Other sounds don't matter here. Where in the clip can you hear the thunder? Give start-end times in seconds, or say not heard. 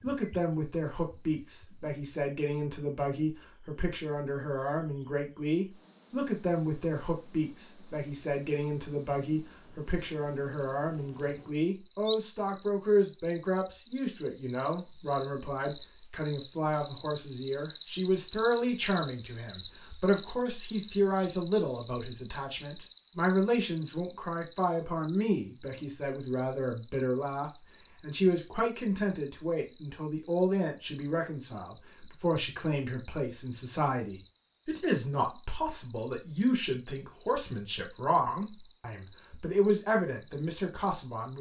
not heard.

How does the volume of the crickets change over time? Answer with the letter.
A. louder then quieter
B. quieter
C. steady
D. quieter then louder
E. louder
A.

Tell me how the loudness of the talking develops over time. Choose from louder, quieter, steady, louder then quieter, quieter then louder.
steady.